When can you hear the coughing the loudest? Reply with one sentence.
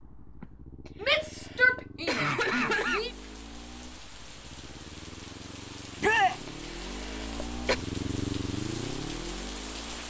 The volume of the coughing peaks at 3 seconds.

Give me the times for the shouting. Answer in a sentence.
You can hear the shouting from 1.0 to 3.1 s and from 6.0 to 6.4 s.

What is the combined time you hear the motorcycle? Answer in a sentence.
The motorcycle can be heard for 10 seconds in total.